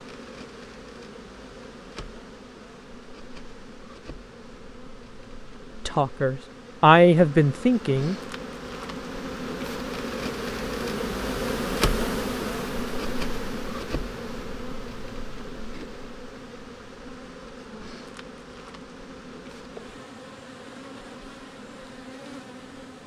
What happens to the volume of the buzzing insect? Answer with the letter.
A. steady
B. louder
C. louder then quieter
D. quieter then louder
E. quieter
C.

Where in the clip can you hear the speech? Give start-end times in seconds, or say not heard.
5.8-8.2.